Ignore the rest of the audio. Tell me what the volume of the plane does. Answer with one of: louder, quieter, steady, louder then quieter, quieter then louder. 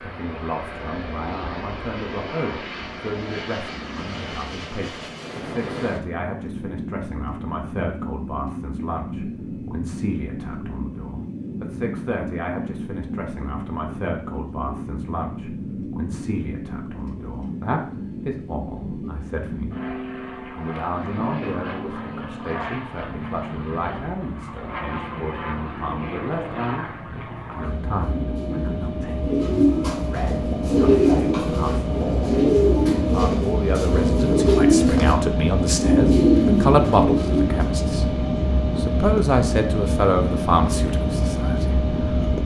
louder.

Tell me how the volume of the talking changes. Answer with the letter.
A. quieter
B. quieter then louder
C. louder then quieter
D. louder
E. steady
D.